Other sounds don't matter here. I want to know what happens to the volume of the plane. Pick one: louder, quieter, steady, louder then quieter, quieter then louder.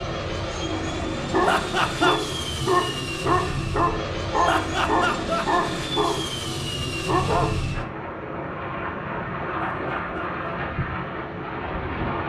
steady.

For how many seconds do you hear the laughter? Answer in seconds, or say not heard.
3 s.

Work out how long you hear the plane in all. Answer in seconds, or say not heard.
12 s.